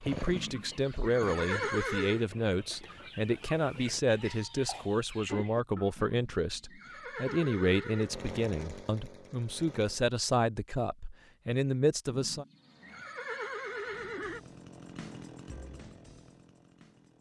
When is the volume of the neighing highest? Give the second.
2 s.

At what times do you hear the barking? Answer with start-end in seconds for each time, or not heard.
not heard.